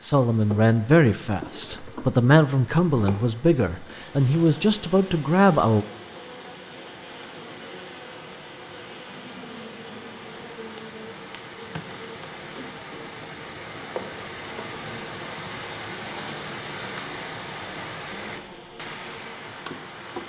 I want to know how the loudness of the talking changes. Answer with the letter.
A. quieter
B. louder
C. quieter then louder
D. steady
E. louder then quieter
D.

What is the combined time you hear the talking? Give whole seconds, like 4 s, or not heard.
6 s.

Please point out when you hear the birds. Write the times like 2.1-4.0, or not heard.
not heard.